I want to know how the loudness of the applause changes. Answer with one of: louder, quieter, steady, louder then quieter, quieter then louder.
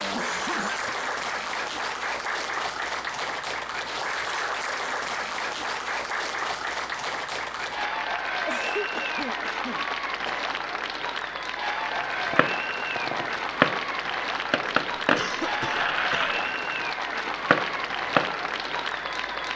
steady.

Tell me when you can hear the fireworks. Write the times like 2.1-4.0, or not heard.
11.9-18.8.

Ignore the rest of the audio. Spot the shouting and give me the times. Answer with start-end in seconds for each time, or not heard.
not heard.